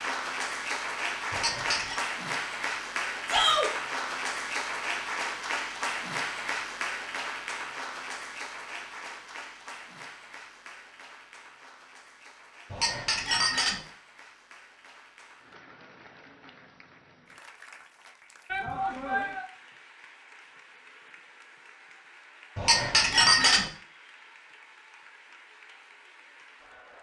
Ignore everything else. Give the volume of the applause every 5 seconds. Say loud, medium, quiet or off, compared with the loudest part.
loud, loud, quiet, quiet, quiet, quiet.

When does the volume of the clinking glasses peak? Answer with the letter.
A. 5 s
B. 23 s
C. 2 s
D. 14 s
B.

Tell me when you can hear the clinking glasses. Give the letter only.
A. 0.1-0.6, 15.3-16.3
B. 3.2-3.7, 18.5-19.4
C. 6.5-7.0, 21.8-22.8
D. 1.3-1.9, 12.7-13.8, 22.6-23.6
D.